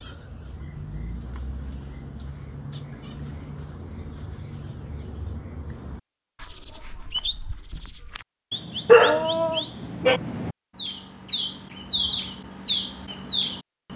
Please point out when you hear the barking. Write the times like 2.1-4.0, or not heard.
8.8-10.2.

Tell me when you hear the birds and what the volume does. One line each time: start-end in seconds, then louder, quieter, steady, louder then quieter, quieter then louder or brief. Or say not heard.
0.0-13.9 louder.